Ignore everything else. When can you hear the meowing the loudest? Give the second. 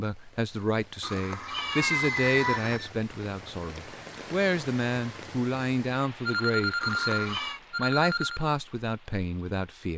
2 s.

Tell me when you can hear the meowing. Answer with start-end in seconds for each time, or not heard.
1.0-2.8, 6.8-7.6.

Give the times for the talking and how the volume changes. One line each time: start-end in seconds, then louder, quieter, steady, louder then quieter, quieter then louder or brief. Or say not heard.
0.0-9.9 steady.